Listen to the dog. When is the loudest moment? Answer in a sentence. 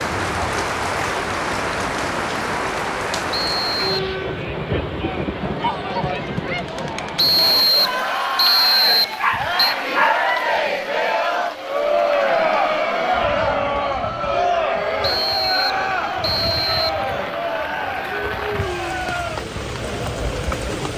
The loudest moment of the dog is at 10 seconds.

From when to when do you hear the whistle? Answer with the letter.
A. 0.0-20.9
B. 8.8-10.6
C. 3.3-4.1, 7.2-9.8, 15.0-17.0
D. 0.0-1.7
C.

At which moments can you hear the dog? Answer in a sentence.
The dog can be heard from 8.8 to 10.6 s.